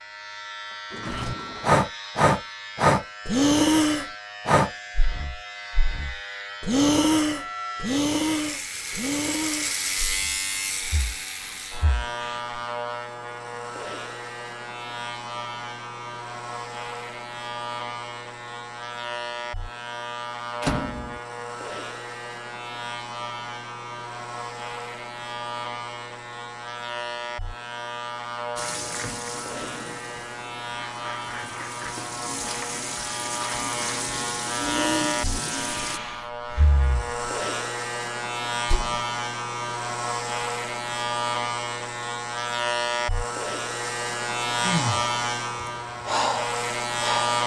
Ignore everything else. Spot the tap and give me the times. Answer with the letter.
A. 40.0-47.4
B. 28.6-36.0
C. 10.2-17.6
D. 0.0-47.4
B.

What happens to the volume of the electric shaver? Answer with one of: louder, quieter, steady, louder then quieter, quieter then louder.
louder.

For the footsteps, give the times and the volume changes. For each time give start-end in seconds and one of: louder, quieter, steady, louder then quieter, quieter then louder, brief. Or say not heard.
not heard.